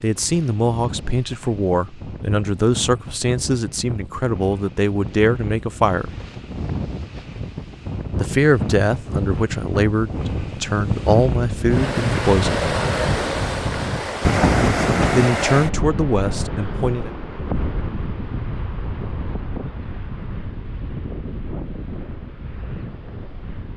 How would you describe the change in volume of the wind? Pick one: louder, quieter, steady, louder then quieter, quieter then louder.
louder then quieter.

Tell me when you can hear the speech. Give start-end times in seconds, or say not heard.
0.0-6.2, 8.2-12.7, 15.2-17.1.